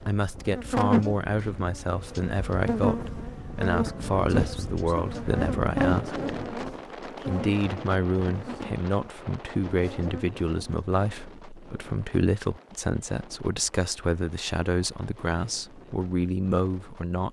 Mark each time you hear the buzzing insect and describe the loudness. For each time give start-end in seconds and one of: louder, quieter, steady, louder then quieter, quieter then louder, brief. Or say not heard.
0.5-10.8 quieter.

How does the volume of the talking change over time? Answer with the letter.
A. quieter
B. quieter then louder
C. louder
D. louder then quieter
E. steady
E.